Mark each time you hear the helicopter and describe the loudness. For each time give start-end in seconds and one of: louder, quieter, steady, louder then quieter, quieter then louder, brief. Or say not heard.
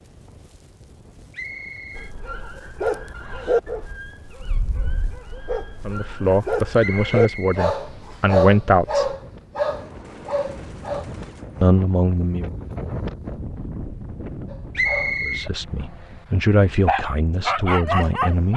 not heard.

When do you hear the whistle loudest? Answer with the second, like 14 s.
15 s.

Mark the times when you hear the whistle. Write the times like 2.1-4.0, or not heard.
1.3-2.1, 6.8-8.2, 14.8-15.5.